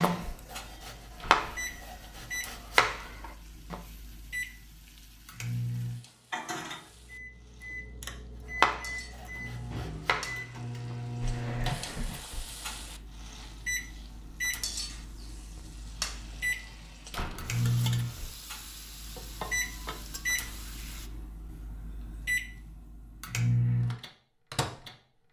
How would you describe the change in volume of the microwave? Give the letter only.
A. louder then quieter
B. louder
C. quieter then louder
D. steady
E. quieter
B.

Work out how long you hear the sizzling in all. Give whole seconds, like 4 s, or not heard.
21 s.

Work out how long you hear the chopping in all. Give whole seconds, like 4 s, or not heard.
6 s.